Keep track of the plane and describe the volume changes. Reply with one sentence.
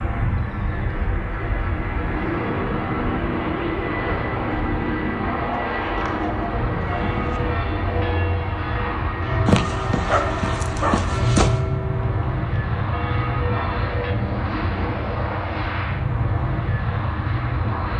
The volume of the plane stays about the same.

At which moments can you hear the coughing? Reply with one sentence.
You can't hear the coughing here.